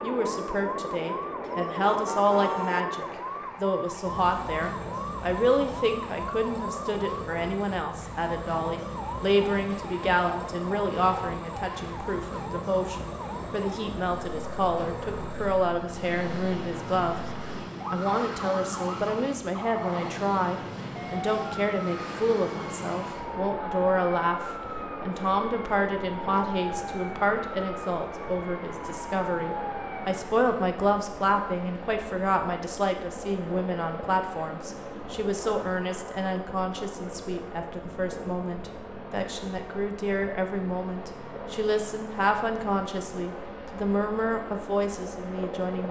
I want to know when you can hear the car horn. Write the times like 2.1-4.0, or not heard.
1.4-2.9.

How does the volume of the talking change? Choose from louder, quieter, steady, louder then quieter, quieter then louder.
steady.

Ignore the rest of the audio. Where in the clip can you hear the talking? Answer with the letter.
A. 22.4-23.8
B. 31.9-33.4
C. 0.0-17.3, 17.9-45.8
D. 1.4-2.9
C.